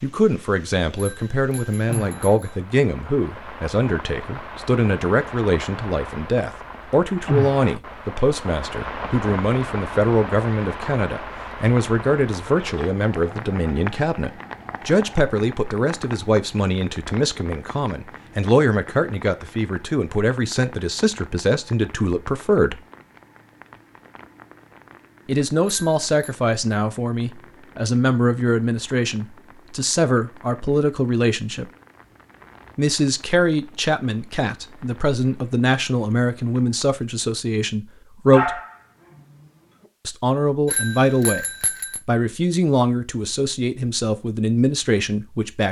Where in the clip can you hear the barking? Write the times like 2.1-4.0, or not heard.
38.3-39.5.